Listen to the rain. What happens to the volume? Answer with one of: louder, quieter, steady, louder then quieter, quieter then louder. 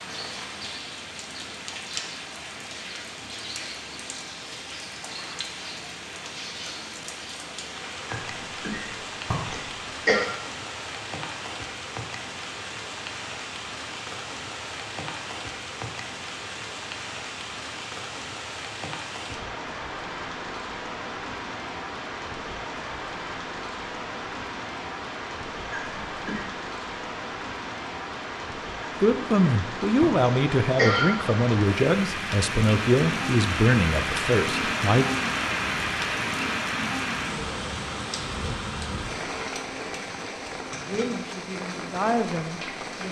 louder.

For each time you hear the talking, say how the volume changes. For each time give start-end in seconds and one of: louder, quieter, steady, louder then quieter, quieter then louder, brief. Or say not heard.
29.0-35.1 steady
40.9-43.0 brief.